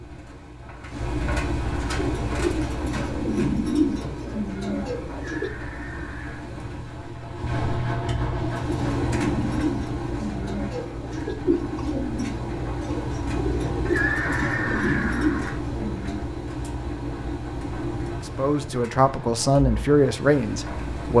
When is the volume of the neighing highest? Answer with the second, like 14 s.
14 s.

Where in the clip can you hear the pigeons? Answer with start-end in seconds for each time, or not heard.
1.9-5.5, 8.3-16.1.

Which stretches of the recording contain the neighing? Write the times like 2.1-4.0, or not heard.
5.2-6.5, 13.8-15.6.